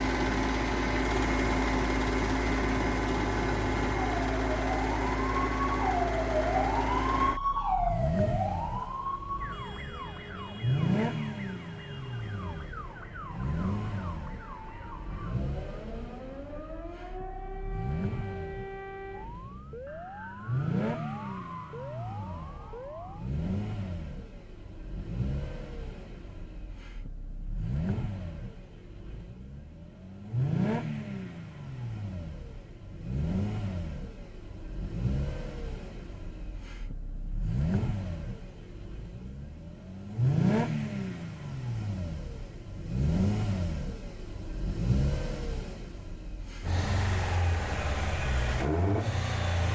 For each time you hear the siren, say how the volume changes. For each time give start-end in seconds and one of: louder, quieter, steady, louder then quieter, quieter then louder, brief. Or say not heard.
0.1-23.3 louder then quieter.